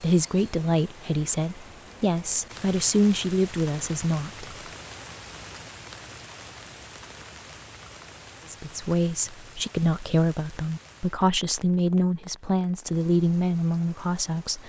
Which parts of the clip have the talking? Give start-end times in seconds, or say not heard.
0.0-4.5, 8.4-14.6.